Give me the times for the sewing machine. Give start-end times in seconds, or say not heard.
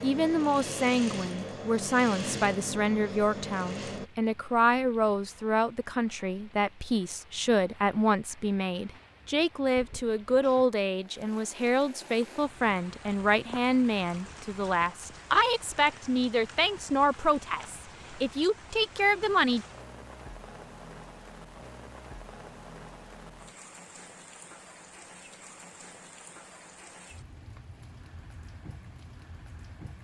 0.0-4.1.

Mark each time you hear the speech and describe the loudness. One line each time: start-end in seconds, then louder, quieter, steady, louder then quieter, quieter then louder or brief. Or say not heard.
0.0-19.6 steady.